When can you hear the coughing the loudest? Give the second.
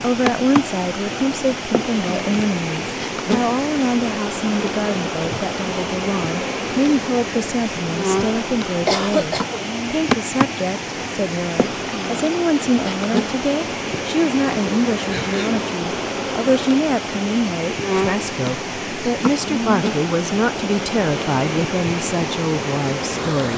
9 s.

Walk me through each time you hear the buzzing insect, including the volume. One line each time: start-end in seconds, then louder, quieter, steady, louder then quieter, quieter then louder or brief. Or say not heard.
0.1-23.5 steady.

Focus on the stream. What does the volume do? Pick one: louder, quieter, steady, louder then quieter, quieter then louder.
steady.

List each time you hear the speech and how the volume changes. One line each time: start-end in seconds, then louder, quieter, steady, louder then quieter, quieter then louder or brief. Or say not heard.
0.0-23.5 steady.